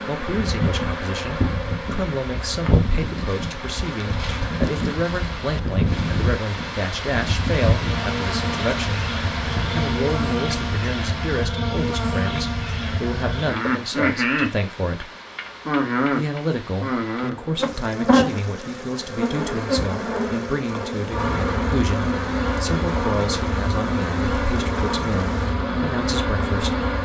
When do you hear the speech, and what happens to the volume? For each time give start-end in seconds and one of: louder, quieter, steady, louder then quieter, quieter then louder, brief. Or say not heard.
0.1-15.1 steady
16.1-26.8 steady.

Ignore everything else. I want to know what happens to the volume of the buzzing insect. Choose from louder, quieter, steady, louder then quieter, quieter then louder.
steady.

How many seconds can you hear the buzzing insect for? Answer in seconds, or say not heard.
27 s.